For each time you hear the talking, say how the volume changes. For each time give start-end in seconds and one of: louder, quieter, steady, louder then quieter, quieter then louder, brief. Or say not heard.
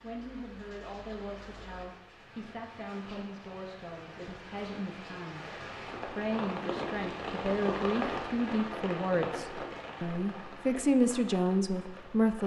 0.0-12.4 louder.